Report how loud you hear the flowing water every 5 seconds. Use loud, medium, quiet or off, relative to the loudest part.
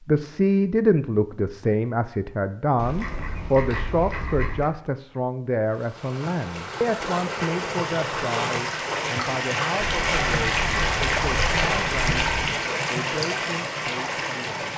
off, loud, loud.